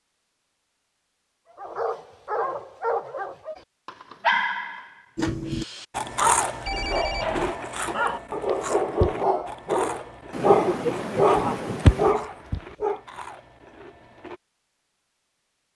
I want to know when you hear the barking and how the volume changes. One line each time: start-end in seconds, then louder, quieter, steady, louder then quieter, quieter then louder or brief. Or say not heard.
1.6-13.0 louder.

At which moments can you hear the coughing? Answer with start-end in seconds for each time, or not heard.
10.3-12.2.